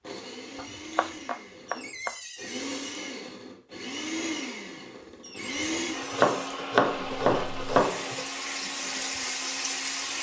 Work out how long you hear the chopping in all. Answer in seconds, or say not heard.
4 s.